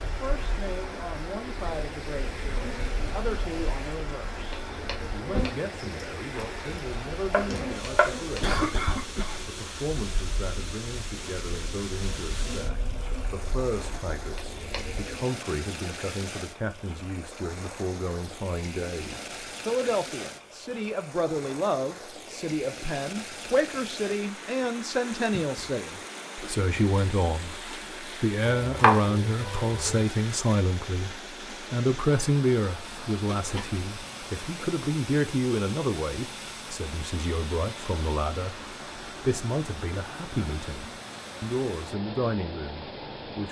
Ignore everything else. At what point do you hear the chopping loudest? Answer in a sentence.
The loudest moment of the chopping is at 29 seconds.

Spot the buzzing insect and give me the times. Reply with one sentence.
You can hear the buzzing insect from 0.0 to 15.2 s.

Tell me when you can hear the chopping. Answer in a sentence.
The chopping can be heard from 7.3 to 8.4 s and from 28.6 to 30.1 s.